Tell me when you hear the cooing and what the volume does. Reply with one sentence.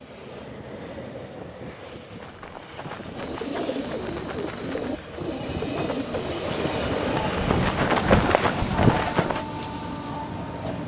The cooing can be heard from 3.1 to 10.8 s, at a steady volume.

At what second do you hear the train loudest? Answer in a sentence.
The loudest moment of the train is at 7 seconds.